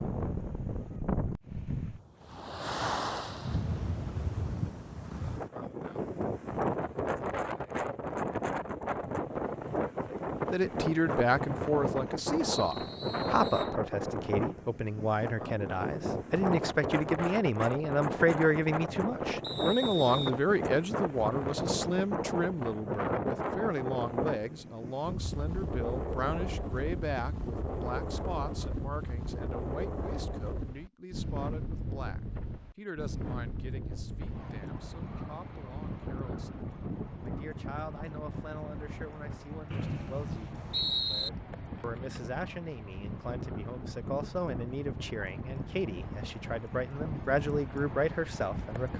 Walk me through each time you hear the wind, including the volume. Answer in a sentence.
You can hear the wind from 0.0 to 48.9 s, getting quieter.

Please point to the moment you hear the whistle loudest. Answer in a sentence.
The volume of the whistle peaks at 41 seconds.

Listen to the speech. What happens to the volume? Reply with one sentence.
The volume of the speech goes down, then up.